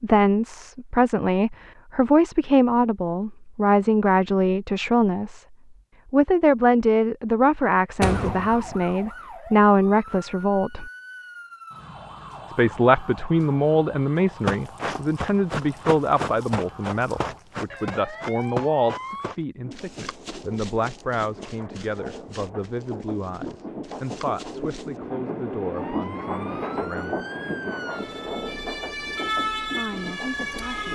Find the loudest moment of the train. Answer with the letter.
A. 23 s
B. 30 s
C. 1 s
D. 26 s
D.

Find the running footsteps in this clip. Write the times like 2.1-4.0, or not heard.
14.2-25.0.